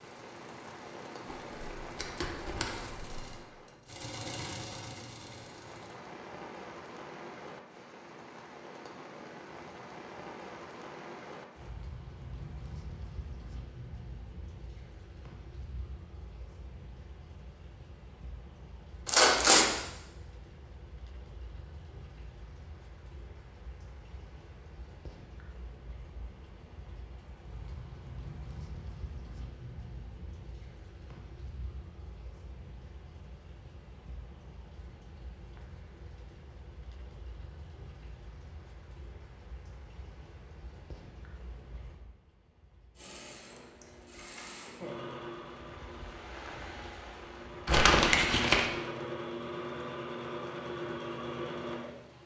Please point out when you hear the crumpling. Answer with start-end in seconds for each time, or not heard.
1.5-3.3, 19.1-19.8, 47.6-48.6.